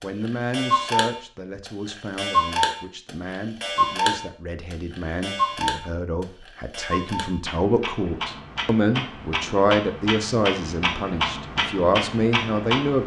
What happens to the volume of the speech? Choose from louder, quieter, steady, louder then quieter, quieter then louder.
louder.